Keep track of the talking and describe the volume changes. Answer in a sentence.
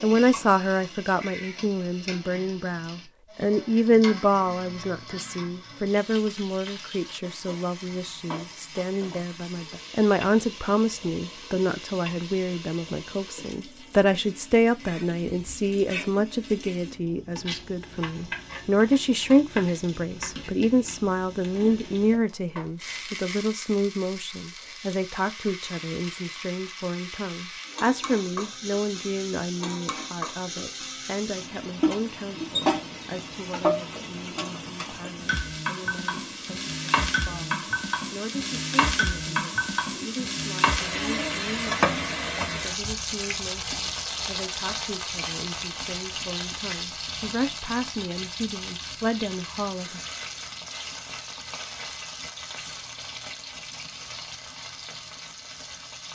The loudness of the talking goes down.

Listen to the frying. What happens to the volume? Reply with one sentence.
The loudness of the frying goes up, then down.